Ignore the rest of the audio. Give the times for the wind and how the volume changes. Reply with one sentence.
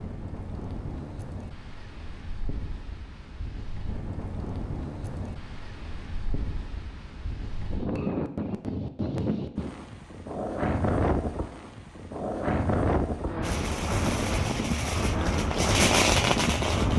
You can hear the wind from 0.0 to 16.9 s, getting louder.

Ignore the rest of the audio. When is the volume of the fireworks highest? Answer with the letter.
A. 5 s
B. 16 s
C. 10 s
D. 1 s
B.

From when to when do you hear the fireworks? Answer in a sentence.
The fireworks can be heard from 13.4 to 16.9 s.